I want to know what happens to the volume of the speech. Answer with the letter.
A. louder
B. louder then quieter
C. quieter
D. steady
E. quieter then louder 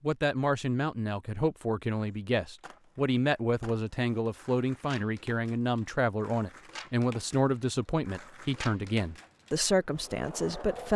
D.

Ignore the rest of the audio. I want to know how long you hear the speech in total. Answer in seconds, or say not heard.
11 s.